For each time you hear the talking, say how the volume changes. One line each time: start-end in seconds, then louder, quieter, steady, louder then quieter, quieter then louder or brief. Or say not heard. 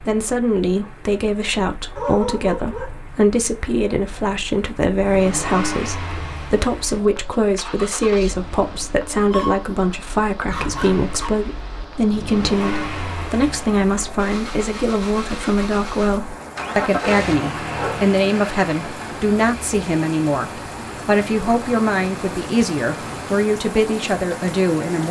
0.0-25.0 steady.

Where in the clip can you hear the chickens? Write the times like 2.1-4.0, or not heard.
not heard.